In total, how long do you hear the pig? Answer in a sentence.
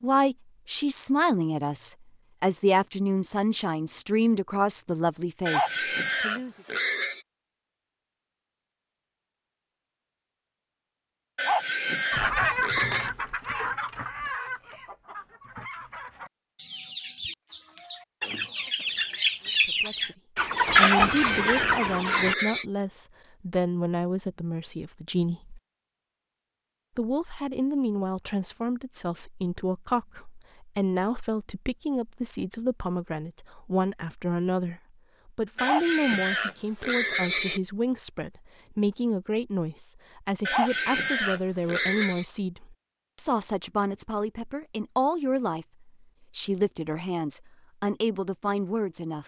The pig can be heard for 9 seconds in total.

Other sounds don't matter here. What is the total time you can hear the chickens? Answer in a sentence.
The chickens can be heard for 10 seconds in total.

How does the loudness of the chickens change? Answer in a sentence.
The loudness of the chickens goes down, then up.